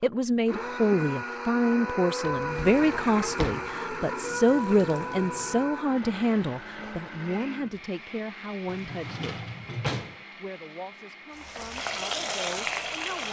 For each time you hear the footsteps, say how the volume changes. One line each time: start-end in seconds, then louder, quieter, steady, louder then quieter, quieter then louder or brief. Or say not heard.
not heard.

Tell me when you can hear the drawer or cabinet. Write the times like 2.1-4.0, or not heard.
2.2-3.7, 8.7-10.2.